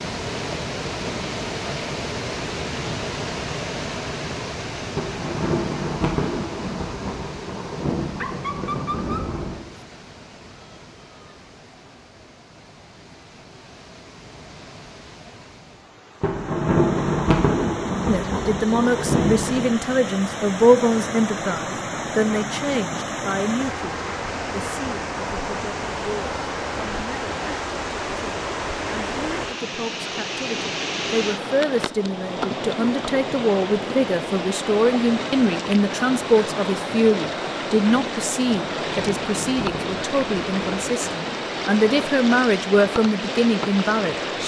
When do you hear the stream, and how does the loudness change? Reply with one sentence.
You can hear the stream from 0.0 to 44.4 s, getting quieter then louder.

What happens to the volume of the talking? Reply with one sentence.
The volume of the talking goes down, then up.